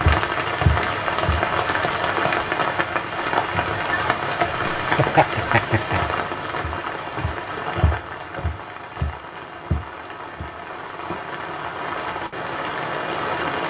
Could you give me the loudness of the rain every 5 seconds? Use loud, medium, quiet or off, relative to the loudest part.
loud, medium, medium.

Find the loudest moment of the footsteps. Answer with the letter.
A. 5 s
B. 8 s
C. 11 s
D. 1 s
D.